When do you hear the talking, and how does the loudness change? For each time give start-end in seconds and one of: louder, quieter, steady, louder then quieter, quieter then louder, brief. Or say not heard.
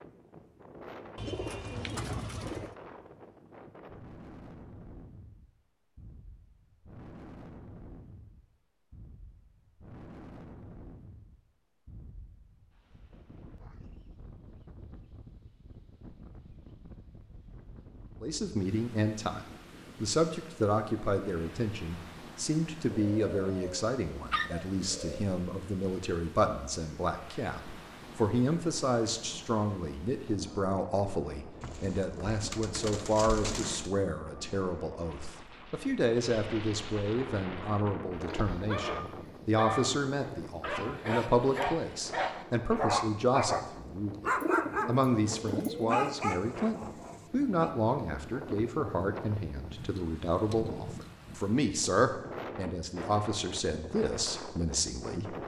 18.2-55.4 steady.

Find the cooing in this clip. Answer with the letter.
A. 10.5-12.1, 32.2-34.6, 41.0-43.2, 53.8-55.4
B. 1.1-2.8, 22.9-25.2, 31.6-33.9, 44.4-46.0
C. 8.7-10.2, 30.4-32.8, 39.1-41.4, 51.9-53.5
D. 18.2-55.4
B.